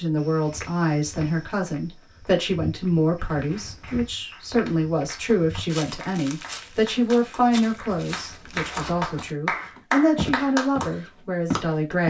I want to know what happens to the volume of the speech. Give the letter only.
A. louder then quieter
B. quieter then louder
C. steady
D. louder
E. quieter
C.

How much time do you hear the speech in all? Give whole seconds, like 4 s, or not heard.
12 s.